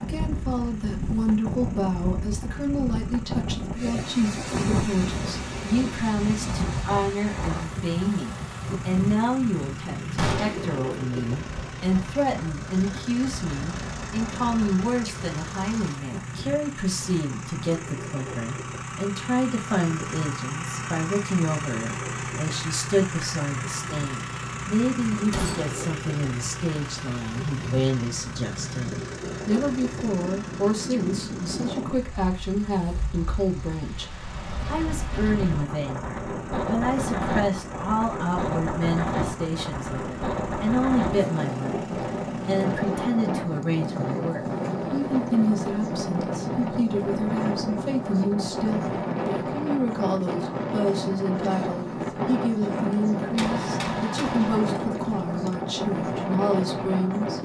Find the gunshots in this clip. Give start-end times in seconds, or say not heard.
10.2-10.8, 25.3-25.8, 53.4-55.5.